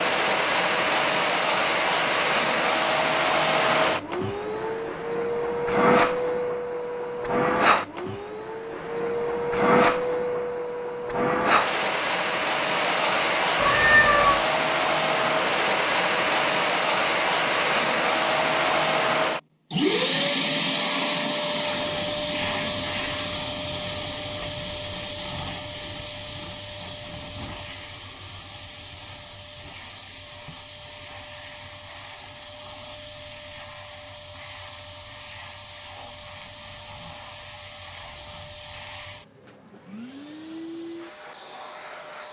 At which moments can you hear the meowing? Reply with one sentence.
You can hear the meowing from 13.6 to 14.4 s.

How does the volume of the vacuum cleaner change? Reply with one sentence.
The volume of the vacuum cleaner goes down.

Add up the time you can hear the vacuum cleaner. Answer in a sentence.
You can hear the vacuum cleaner for 42 seconds altogether.